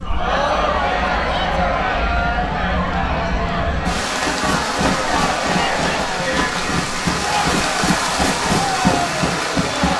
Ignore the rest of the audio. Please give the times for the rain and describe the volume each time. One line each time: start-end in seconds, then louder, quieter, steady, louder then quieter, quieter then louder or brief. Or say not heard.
0.0-9.9 louder.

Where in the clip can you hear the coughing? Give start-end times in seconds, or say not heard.
not heard.